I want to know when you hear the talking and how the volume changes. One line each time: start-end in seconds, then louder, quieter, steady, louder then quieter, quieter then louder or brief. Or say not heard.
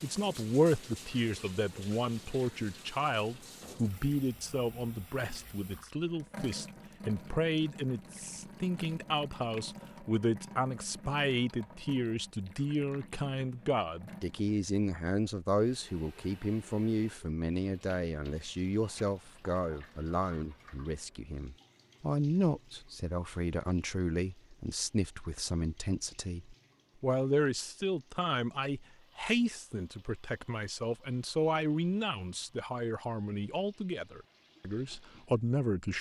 0.0-35.9 steady.